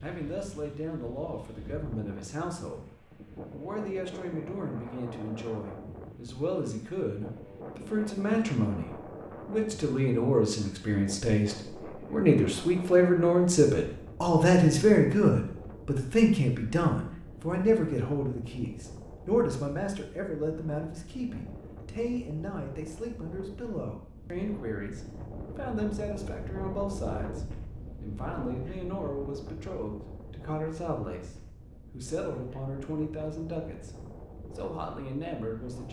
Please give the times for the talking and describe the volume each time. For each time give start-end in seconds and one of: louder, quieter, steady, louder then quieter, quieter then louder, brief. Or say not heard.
0.0-35.8 louder then quieter.